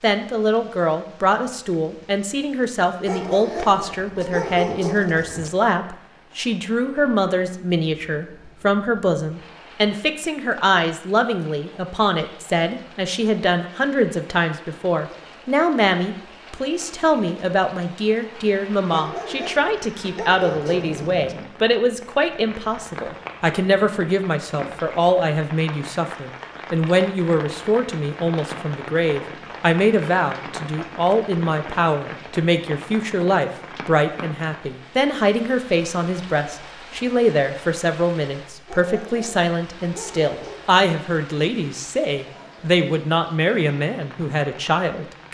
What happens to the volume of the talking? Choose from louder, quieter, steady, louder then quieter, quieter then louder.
steady.